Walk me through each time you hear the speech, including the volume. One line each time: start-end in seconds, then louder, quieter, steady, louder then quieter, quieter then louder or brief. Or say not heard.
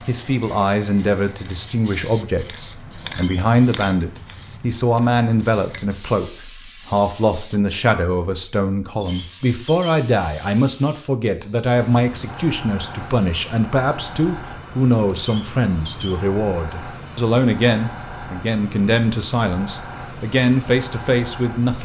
0.1-21.7 steady.